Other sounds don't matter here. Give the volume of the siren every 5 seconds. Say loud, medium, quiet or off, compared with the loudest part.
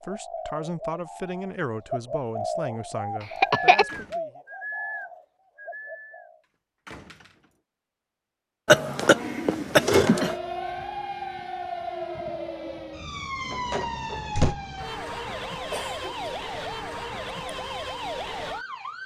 off, off, loud, loud.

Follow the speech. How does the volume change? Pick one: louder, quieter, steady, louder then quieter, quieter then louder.
quieter.